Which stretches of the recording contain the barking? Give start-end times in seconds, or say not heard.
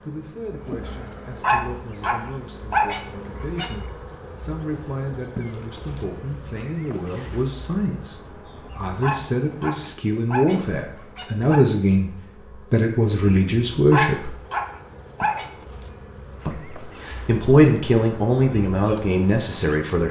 1.4-3.7, 9.0-11.7, 13.9-15.4.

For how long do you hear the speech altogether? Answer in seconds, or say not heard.
17 s.